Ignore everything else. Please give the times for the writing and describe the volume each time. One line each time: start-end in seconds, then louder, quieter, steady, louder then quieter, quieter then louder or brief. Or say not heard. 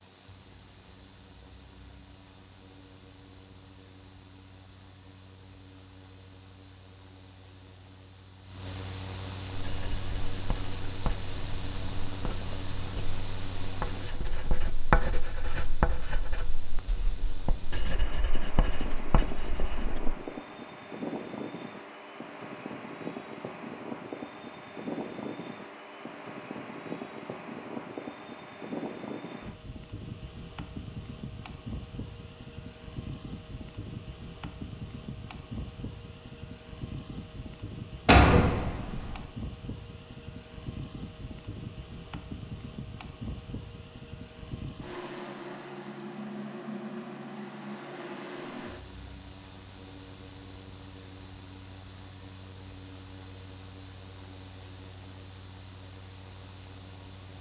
9.5-20.1 louder then quieter.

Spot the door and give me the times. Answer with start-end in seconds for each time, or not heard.
38.0-39.1.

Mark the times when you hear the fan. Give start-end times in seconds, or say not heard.
0.0-57.3.